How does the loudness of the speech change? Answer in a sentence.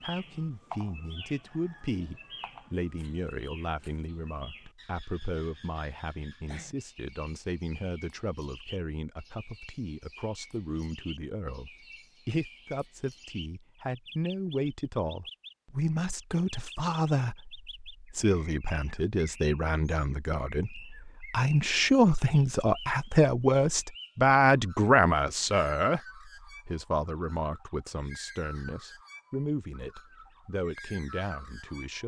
The volume of the speech goes up, then down.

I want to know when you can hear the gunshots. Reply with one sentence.
The gunshots can't be heard in this clip.